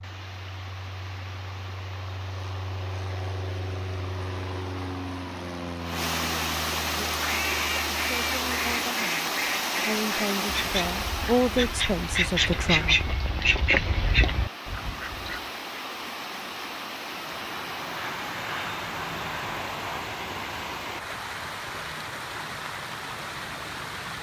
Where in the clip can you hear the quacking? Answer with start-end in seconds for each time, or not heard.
7.2-15.4.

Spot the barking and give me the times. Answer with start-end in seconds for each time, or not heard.
not heard.